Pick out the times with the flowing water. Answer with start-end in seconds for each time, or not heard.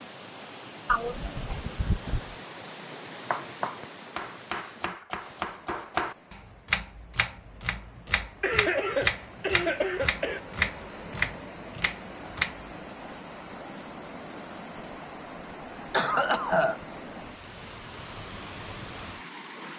0.0-19.7.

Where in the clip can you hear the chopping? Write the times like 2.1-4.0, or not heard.
3.1-12.7.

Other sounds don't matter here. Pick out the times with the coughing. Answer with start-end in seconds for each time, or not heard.
0.8-2.4, 8.4-10.4, 15.9-16.8.